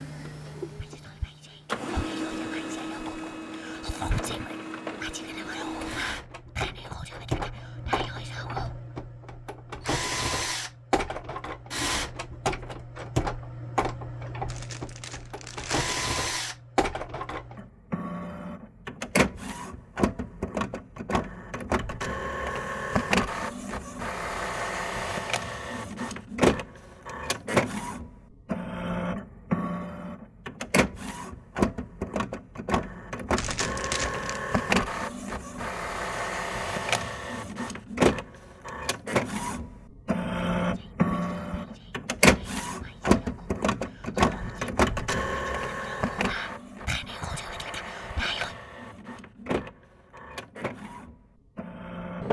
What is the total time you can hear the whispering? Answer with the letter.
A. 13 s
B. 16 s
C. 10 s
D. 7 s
B.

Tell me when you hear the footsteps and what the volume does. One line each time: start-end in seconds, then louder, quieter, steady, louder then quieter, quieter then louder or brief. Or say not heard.
not heard.